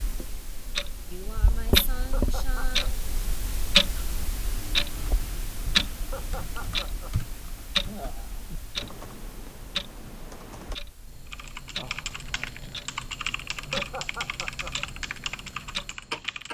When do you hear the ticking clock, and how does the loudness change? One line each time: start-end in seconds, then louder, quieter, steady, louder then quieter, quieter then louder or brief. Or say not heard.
0.0-16.4 quieter.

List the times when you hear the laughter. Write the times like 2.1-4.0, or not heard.
2.0-2.9, 6.0-7.2, 13.6-14.7.